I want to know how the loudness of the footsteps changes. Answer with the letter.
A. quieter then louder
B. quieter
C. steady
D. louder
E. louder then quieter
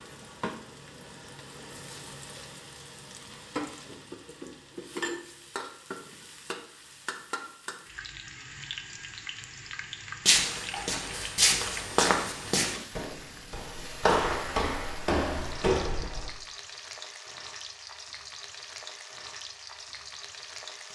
A.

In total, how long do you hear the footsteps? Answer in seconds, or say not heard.
6 s.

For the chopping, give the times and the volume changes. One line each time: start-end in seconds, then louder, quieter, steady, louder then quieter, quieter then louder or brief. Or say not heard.
not heard.